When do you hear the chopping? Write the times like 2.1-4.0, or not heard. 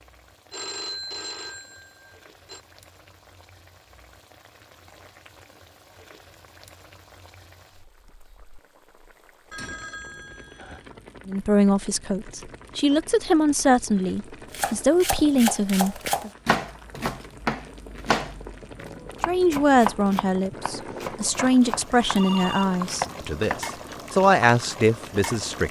14.5-23.7.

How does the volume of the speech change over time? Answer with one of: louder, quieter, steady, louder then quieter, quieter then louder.
steady.